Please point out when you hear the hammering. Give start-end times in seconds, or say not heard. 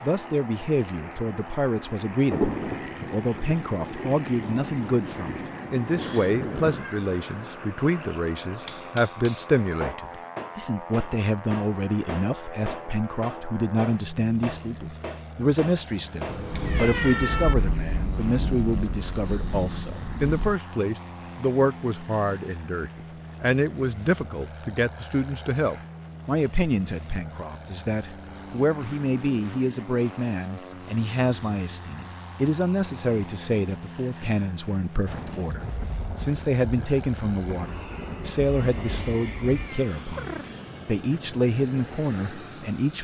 8.7-16.9.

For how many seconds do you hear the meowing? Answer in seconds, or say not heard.
4 s.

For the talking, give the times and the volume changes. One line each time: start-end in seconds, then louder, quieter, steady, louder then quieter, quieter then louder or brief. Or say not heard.
0.0-43.0 steady.